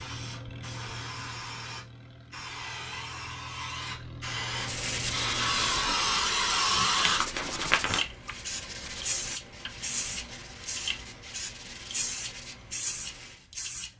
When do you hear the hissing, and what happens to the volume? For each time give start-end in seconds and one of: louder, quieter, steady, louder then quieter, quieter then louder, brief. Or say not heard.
0.0-13.9 louder then quieter.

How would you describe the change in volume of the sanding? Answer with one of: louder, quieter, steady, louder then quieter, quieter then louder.
quieter.